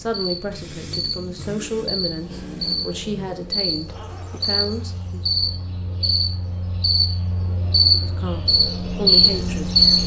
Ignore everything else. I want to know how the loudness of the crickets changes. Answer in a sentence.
The loudness of the crickets goes up.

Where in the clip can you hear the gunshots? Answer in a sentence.
You can't hear the gunshots here.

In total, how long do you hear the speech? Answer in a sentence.
The speech can be heard for 7 seconds in total.